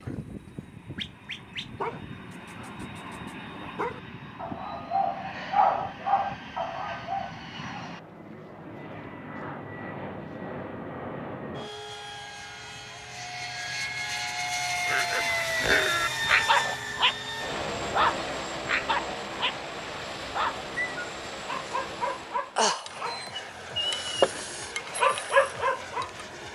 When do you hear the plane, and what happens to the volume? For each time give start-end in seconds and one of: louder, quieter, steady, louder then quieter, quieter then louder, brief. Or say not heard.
0.0-26.5 louder then quieter.